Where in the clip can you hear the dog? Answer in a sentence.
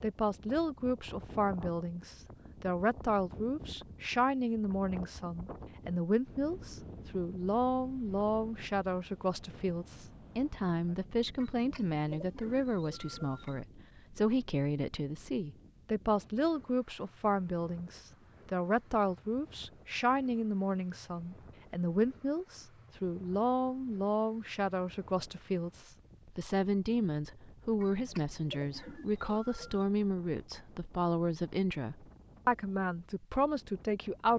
You can't hear the dog here.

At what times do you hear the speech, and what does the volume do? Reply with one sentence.
The speech can be heard from 0.0 to 34.3 s, at a steady volume.